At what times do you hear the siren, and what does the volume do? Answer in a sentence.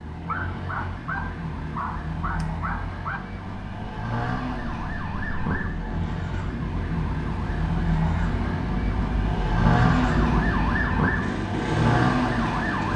You can hear the siren from 0.0 to 12.9 s, getting louder.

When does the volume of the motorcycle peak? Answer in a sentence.
The volume of the motorcycle peaks at 10 seconds.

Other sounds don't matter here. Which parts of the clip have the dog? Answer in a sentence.
The dog can be heard from 0.2 to 3.2 s.